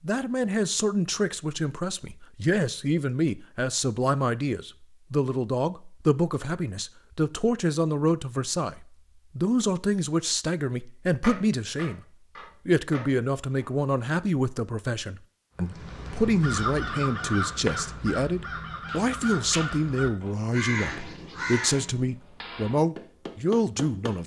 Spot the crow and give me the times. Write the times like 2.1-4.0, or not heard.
15.6-21.9.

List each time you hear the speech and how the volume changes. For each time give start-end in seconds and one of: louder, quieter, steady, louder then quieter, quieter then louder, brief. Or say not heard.
0.0-12.1 steady
12.7-24.2 steady.